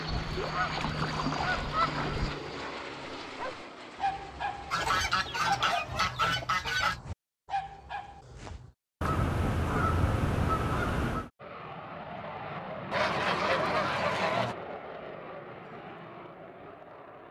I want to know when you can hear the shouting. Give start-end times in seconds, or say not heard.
not heard.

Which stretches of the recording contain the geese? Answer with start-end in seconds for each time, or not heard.
0.1-2.4, 4.7-7.0, 9.0-11.3, 12.9-14.6.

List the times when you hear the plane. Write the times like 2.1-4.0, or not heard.
0.0-5.8, 11.3-17.2.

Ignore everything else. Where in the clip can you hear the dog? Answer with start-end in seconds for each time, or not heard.
3.2-8.7.